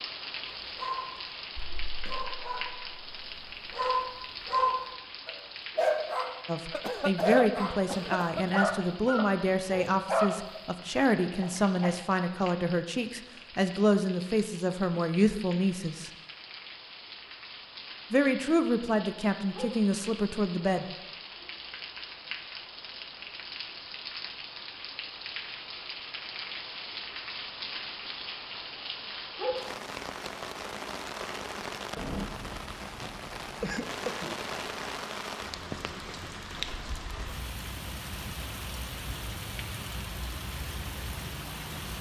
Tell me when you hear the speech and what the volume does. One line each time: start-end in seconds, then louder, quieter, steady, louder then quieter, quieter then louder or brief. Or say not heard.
6.5-16.1 steady
18.1-20.9 brief.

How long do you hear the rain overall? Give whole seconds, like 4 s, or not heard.
42 s.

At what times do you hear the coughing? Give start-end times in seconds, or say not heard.
6.7-8.6, 33.0-34.4.